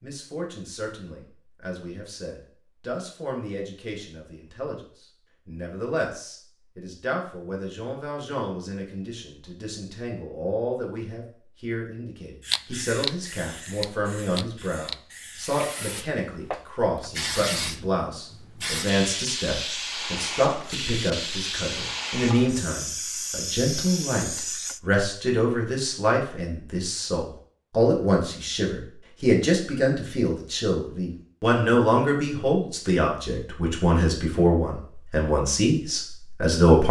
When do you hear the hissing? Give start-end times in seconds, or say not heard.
12.4-24.8.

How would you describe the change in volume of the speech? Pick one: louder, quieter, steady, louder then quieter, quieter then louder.
louder.